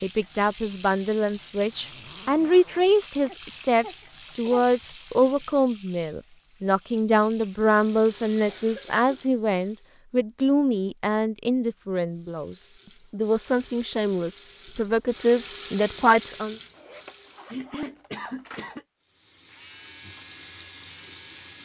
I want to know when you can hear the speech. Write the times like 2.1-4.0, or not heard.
0.0-16.6.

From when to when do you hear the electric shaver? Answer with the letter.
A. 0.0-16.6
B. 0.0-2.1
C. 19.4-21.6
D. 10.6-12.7
C.